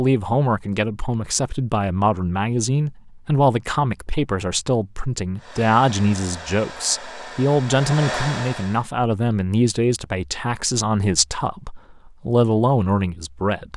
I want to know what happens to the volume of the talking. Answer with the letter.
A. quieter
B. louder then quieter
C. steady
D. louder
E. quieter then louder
C.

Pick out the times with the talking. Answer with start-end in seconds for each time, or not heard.
0.0-13.7.